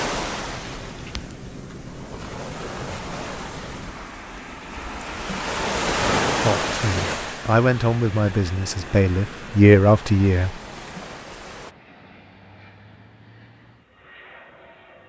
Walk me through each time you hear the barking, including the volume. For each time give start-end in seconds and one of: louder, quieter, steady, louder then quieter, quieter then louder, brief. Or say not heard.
not heard.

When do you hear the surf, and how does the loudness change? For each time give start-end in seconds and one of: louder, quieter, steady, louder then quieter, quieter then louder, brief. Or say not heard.
0.0-11.7 louder then quieter.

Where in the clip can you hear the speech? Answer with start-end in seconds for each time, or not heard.
6.5-10.5.